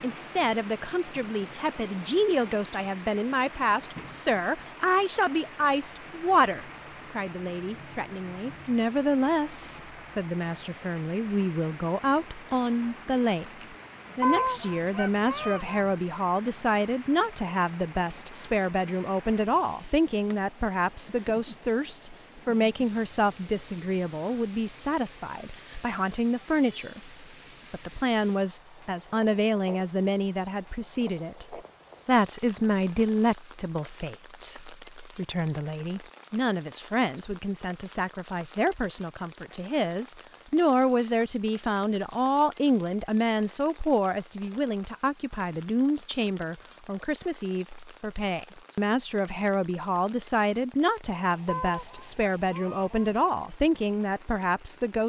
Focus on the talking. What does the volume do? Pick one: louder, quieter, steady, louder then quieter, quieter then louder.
steady.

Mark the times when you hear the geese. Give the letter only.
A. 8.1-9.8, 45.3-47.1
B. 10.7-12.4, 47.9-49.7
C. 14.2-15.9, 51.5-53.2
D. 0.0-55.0
C.